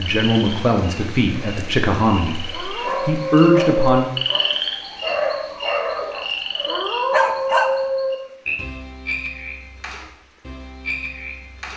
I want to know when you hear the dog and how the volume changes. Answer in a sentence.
You can hear the dog from 2.8 to 7.7 s, getting louder.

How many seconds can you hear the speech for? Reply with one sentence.
The speech can be heard for 4 seconds in total.